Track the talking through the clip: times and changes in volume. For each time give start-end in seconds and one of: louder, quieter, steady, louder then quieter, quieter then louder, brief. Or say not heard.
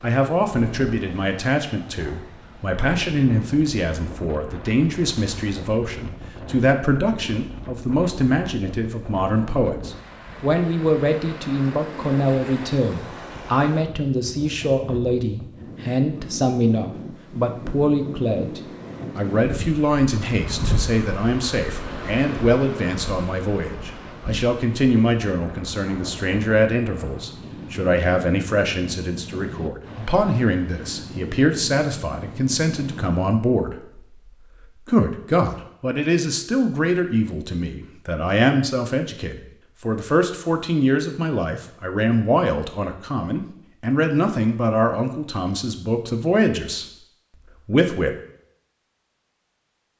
0.0-34.2 steady
34.9-46.9 steady
47.6-48.1 brief.